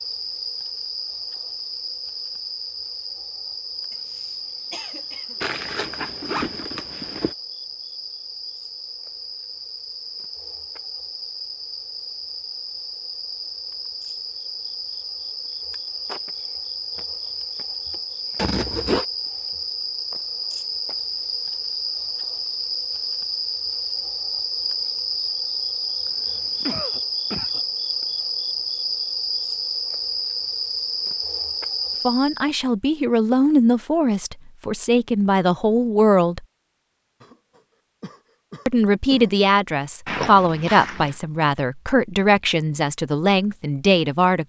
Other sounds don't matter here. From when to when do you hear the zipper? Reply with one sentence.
You can hear the zipper from 5.4 to 7.3 s, from 18.4 to 19.1 s and from 40.0 to 41.1 s.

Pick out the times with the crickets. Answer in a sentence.
The crickets can be heard from 0.0 to 32.5 s.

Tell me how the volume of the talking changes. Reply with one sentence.
The loudness of the talking stays about the same.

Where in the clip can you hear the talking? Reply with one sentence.
You can hear the talking from 32.0 to 36.4 s and from 38.6 to 44.4 s.